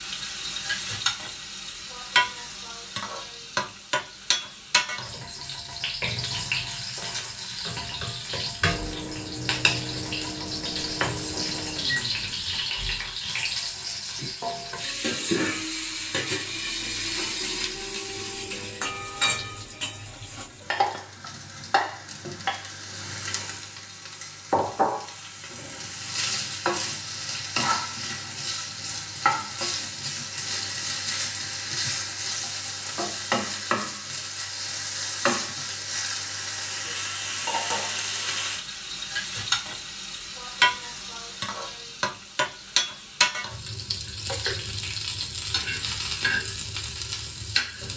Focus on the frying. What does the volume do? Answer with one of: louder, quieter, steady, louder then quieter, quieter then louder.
steady.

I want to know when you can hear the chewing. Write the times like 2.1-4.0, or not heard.
not heard.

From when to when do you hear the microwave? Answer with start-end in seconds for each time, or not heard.
8.6-12.8.